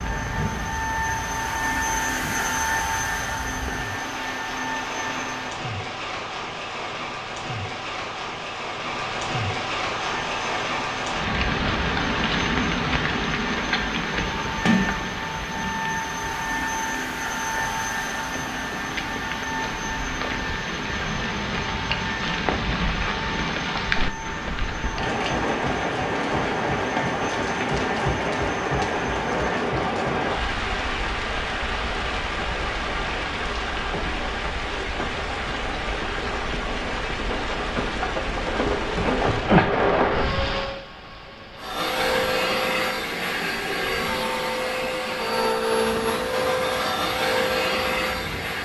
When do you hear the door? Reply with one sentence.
The door can be heard from 14.7 to 15.8 s.